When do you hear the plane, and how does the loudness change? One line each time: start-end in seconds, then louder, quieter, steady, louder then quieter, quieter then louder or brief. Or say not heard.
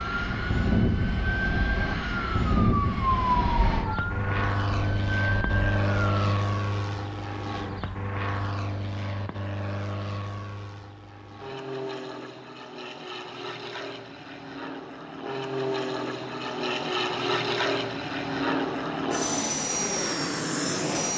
0.0-21.1 quieter then louder.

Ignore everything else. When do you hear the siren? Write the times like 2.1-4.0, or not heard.
0.0-6.3.